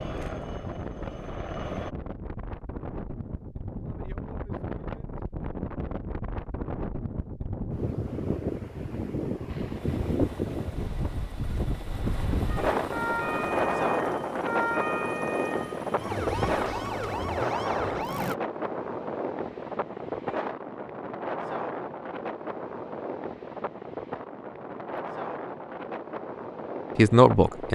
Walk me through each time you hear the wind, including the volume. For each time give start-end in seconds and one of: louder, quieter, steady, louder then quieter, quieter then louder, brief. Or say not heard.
0.0-27.7 louder then quieter.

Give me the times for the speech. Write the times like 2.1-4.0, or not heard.
26.9-27.7.